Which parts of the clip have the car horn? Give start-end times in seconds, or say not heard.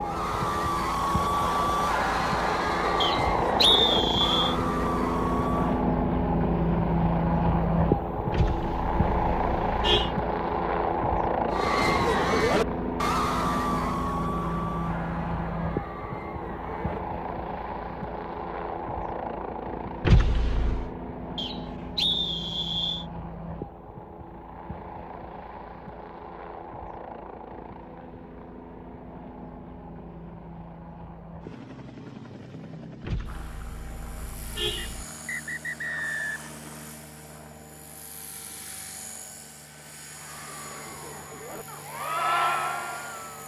8.3-10.1, 20.0-20.9, 33.0-35.0.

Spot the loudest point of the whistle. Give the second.
4 s.